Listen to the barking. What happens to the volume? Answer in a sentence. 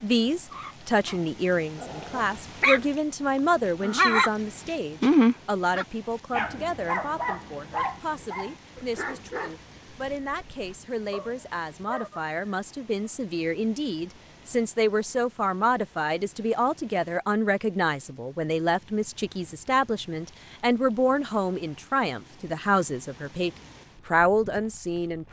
The volume of the barking goes up, then down.